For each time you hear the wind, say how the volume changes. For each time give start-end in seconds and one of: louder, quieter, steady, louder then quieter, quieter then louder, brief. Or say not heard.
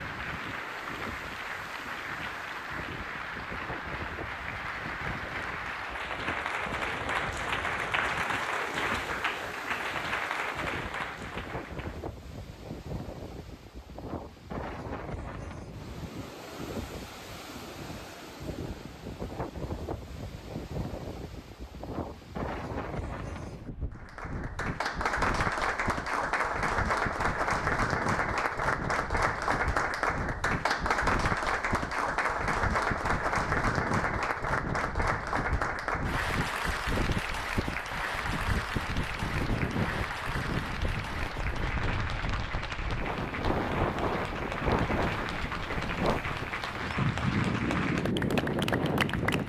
0.0-49.4 louder.